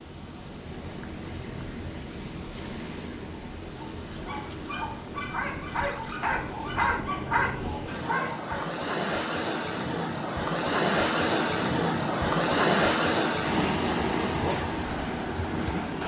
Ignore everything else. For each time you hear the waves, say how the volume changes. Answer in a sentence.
The waves can be heard from 0.0 to 16.0 s, getting louder.